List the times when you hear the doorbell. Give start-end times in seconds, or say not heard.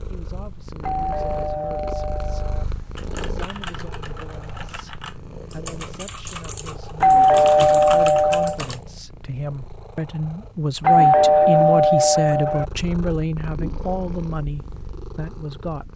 0.8-2.6, 7.0-8.6, 10.8-12.7.